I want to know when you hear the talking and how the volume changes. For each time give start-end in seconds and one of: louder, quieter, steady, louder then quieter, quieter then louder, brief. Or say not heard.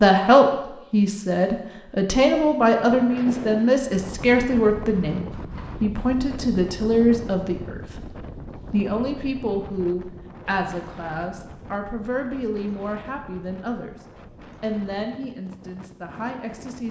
0.0-13.9 quieter
14.6-16.8 brief.